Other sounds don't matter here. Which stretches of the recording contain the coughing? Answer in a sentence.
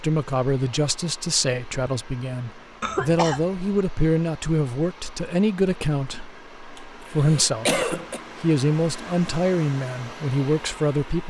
You can hear the coughing from 2.8 to 3.5 s and from 6.8 to 8.2 s.